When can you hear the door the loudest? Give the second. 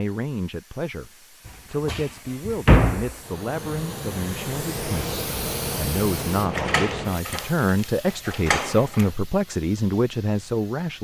3 s.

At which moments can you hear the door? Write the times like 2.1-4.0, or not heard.
1.4-3.1, 6.5-9.1.